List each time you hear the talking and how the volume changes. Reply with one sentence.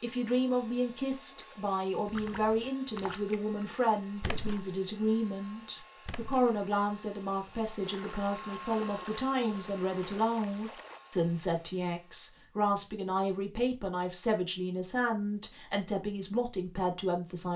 The talking can be heard from 0.0 to 17.5 s, at a steady volume.